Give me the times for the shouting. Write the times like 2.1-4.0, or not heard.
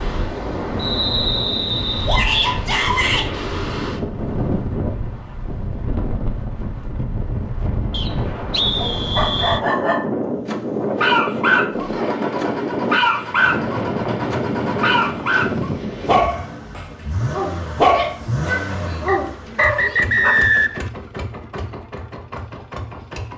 2.0-3.2, 17.9-20.6.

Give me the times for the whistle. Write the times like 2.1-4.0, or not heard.
0.8-2.1, 7.9-9.6, 19.1-20.8.